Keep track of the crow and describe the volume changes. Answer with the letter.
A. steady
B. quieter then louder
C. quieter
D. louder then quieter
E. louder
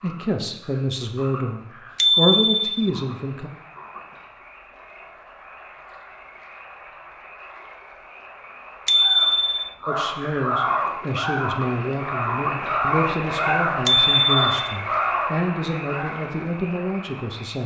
A.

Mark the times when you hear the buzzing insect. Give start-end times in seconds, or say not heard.
not heard.